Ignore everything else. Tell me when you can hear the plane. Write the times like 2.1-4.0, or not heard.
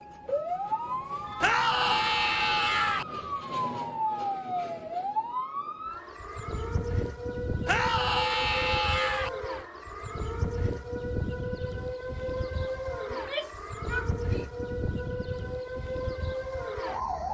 not heard.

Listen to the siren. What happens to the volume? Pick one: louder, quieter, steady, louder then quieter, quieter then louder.
steady.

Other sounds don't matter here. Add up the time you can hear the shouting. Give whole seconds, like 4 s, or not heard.
5 s.